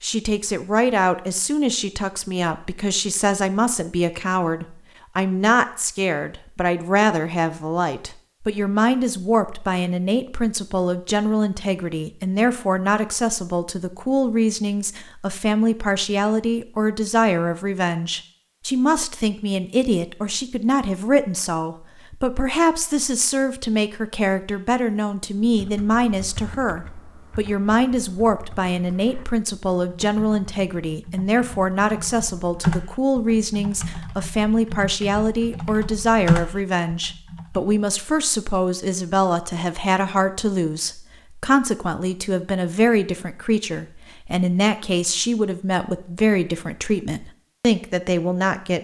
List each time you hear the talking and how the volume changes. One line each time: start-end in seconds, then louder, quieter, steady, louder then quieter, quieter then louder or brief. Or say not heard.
0.0-48.7 steady.